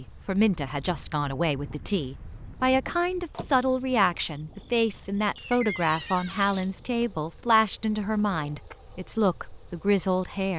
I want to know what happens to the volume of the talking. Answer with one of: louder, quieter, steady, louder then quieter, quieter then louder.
steady.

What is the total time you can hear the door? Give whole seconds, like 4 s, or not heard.
2 s.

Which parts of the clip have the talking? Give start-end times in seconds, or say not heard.
0.0-10.5.